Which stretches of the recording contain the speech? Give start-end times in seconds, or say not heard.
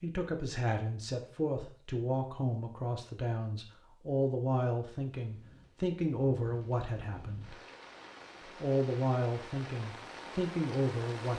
0.0-7.5, 8.6-11.3.